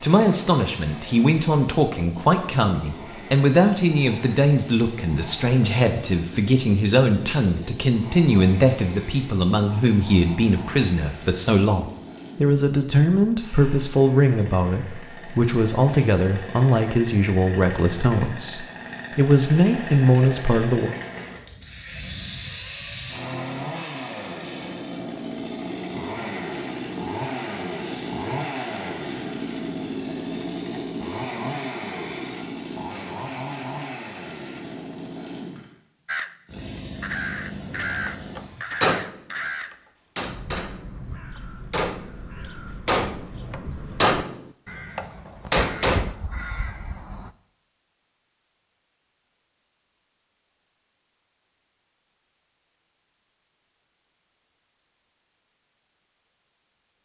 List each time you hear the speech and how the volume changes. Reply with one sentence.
The speech can be heard from 0.0 to 20.9 s, at a steady volume.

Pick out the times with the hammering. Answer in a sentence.
You can hear the hammering from 38.0 to 40.9 s and from 41.7 to 46.1 s.